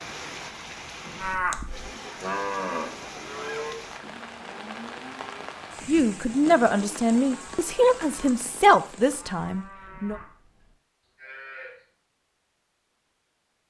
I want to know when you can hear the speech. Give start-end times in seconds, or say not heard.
5.8-10.2.